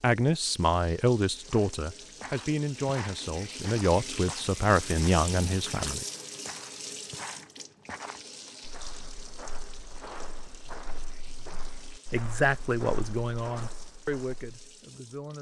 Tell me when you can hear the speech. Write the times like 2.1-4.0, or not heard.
0.0-6.0, 12.1-15.3.